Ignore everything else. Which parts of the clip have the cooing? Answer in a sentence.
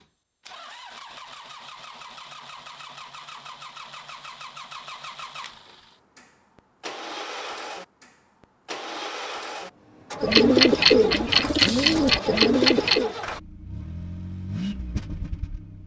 The cooing can be heard from 10.2 to 13.2 s.